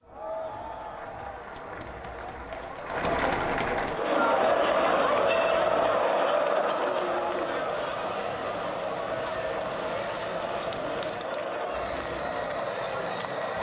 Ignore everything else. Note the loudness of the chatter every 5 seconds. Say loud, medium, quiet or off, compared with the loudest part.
loud, loud, medium.